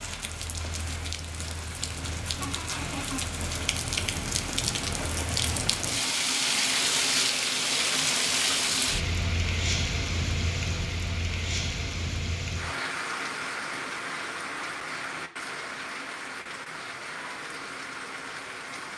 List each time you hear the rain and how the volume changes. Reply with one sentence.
The rain can be heard from 0.0 to 18.9 s, getting louder then quieter.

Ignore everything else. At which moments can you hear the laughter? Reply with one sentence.
You can hear the laughter from 2.4 to 3.2 s.